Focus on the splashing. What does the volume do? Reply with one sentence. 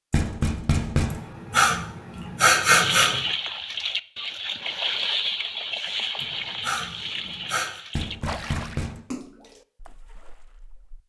The loudness of the splashing goes down.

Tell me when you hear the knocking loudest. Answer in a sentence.
The volume of the knocking peaks at 1 second.